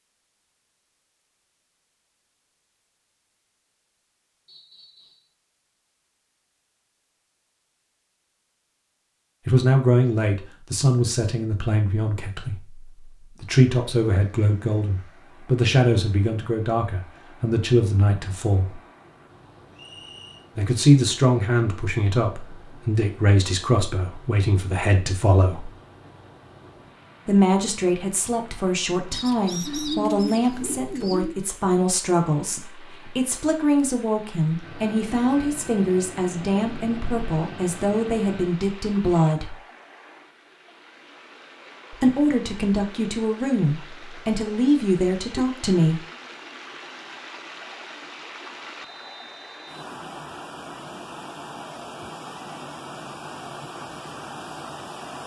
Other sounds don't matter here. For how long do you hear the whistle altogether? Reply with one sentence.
The whistle can be heard for 3 seconds in total.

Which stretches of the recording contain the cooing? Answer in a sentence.
The cooing can be heard from 29.1 to 31.4 s.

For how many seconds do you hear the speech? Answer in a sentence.
The speech can be heard for 31 seconds in total.